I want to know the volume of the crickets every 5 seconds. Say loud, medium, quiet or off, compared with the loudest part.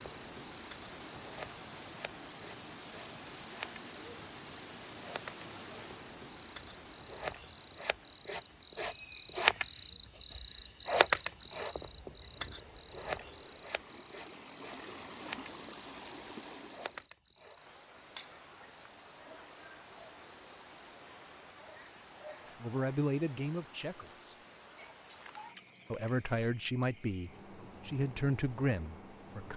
quiet, loud, loud, quiet, quiet, quiet.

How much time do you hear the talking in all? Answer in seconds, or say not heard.
5 s.